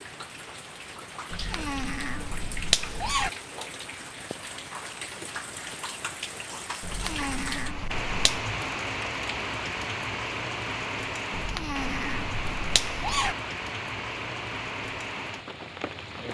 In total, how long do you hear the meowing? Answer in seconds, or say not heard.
6 s.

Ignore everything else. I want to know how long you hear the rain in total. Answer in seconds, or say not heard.
16 s.